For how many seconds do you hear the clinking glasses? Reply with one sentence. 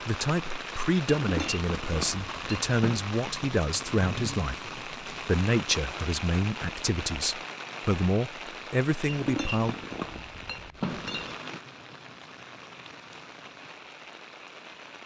You can hear the clinking glasses for 4 seconds altogether.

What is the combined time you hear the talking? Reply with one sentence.
The talking can be heard for 10 seconds in total.